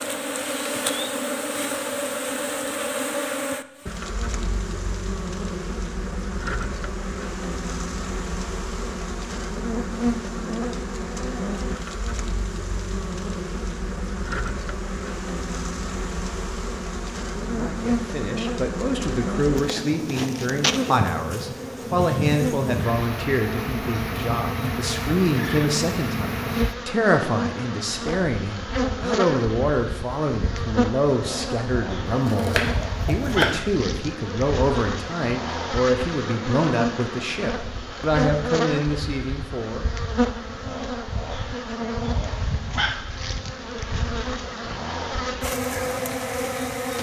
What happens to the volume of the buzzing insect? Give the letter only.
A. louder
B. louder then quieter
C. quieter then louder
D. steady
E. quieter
D.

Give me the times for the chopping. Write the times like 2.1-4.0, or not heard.
32.0-33.6.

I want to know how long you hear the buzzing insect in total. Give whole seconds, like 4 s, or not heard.
47 s.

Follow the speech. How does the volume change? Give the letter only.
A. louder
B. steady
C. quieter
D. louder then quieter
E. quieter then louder
B.